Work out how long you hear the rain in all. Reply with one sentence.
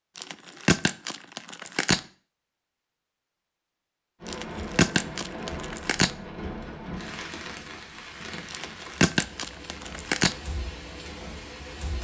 You can hear the rain for 8 seconds altogether.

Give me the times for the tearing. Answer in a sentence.
You can hear the tearing from 0.1 to 2.0 s, from 4.2 to 6.1 s and from 8.4 to 10.3 s.